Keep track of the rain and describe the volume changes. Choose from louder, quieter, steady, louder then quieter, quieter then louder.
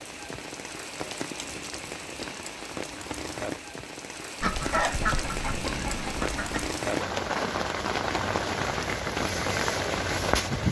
louder.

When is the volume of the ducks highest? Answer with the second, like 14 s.
5 s.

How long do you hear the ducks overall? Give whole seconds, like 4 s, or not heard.
2 s.